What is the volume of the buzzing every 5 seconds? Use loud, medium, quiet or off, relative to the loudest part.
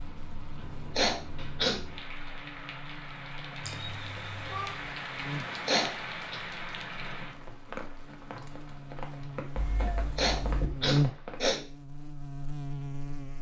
quiet, medium, loud.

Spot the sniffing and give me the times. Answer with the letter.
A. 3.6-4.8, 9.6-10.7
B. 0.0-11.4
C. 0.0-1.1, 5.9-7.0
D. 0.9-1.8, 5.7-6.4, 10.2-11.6
D.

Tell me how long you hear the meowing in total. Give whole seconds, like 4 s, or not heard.
2 s.